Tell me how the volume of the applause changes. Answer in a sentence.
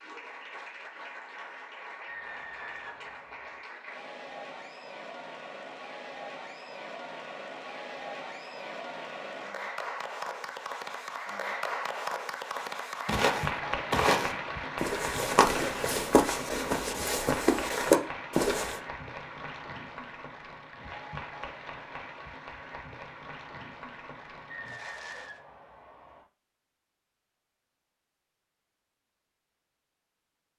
The volume of the applause goes up, then down.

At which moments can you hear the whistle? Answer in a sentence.
The whistle can be heard from 2.0 to 3.6 s and from 24.4 to 26.2 s.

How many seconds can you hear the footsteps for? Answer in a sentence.
The footsteps can be heard for 6 seconds in total.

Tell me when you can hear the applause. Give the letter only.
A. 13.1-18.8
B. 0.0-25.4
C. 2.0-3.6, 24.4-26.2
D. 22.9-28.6
B.